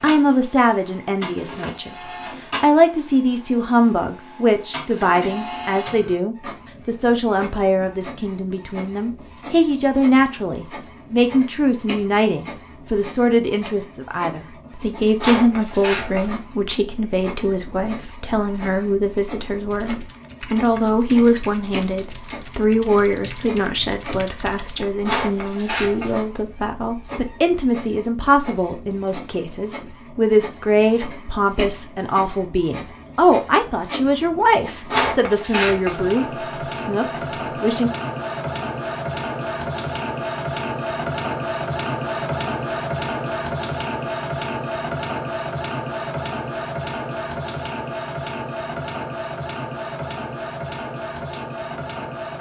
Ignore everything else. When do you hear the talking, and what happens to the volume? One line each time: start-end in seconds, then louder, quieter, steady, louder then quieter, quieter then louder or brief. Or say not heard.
0.0-1.9 brief
2.6-37.9 steady.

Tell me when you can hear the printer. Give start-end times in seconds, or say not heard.
0.0-52.3.